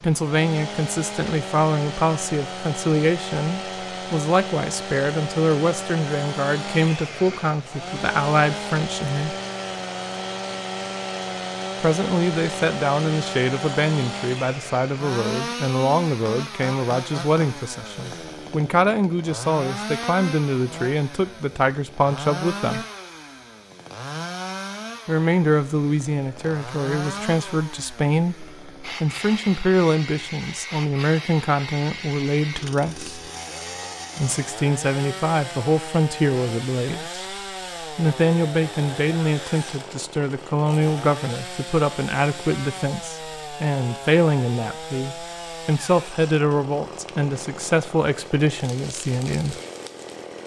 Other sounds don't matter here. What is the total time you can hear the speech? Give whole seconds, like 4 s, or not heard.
44 s.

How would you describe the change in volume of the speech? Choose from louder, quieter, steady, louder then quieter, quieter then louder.
steady.